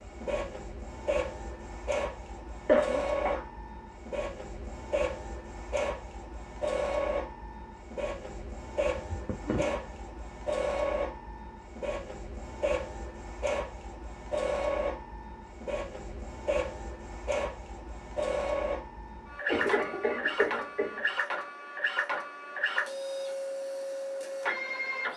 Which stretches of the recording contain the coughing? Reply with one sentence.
You can hear the coughing from 2.6 to 3.5 s, from 9.0 to 10.0 s and from 19.4 to 21.1 s.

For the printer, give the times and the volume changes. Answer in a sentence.
The printer can be heard from 0.0 to 25.1 s, at a steady volume.